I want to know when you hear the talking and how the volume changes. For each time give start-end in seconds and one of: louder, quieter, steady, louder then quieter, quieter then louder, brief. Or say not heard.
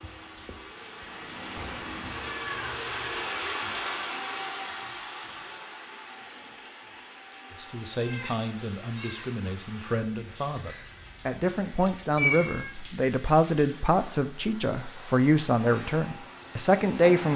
7.5-17.3 louder.